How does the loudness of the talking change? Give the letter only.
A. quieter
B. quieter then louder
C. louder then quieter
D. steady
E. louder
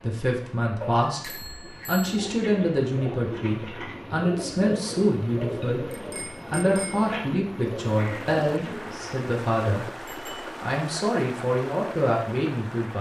D.